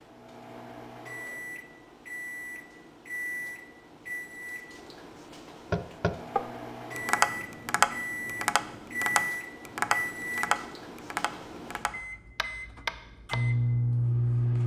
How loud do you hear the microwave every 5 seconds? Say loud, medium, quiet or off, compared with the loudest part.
medium, medium, loud.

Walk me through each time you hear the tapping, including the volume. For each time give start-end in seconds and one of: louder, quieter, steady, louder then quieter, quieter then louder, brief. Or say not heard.
5.7-13.4 quieter.